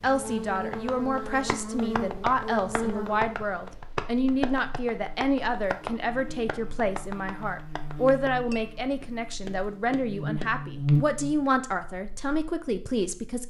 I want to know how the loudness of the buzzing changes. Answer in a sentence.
The loudness of the buzzing goes down, then up.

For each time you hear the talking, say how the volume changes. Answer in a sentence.
You can hear the talking from 0.0 to 13.4 s, at a steady volume.